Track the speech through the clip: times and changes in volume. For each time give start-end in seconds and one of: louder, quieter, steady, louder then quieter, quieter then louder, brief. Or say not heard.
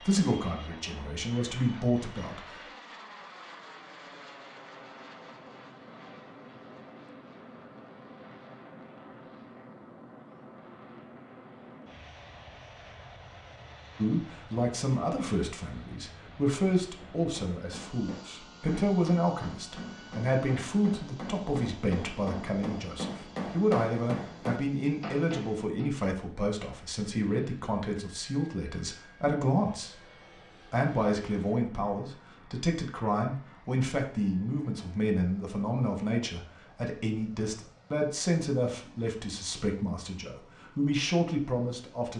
0.0-2.6 brief
13.9-30.1 steady
30.7-42.1 steady.